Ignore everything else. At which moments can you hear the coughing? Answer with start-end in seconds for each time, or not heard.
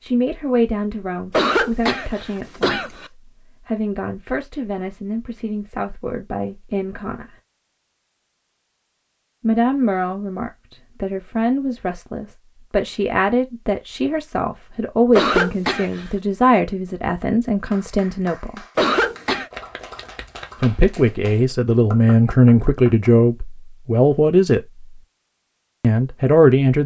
1.3-3.1, 15.2-16.1, 18.8-19.5.